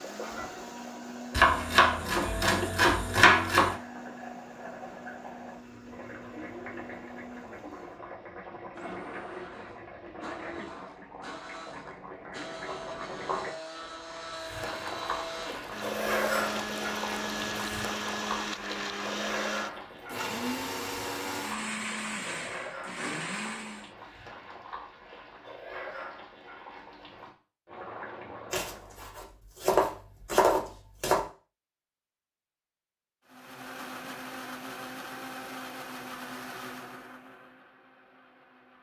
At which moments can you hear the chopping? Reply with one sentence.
You can hear the chopping from 1.3 to 3.8 s and from 28.5 to 31.2 s.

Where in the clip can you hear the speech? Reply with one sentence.
You can't hear the speech here.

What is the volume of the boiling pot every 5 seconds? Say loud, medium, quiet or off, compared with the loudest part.
medium, medium, medium, loud, medium, medium, off, off.